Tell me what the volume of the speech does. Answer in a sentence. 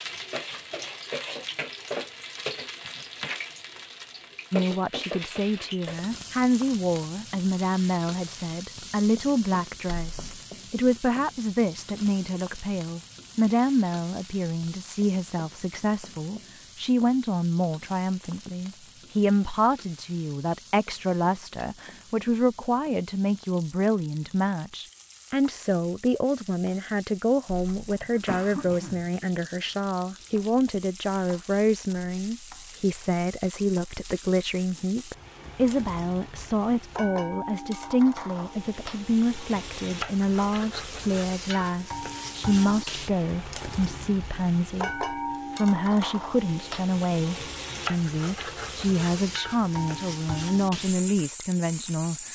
The loudness of the speech stays about the same.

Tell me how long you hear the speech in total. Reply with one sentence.
You can hear the speech for 48 seconds altogether.